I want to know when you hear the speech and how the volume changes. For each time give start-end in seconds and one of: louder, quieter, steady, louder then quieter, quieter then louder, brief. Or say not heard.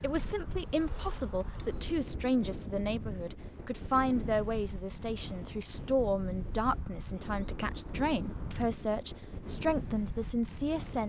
0.0-11.0 steady.